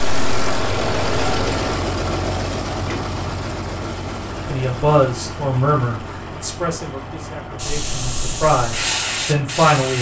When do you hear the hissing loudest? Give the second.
9 s.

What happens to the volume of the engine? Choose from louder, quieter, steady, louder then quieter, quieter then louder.
quieter.